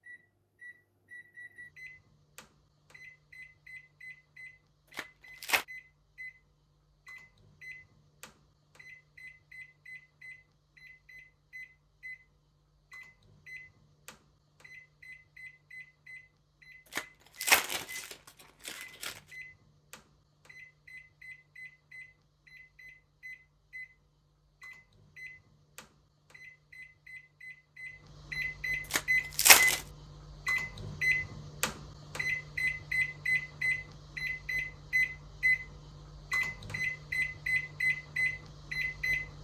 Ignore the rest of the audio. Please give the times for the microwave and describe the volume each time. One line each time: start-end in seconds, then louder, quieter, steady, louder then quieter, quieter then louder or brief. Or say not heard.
0.0-39.3 louder.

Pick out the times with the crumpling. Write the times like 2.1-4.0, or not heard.
5.0-5.7, 16.9-19.1, 28.9-29.8.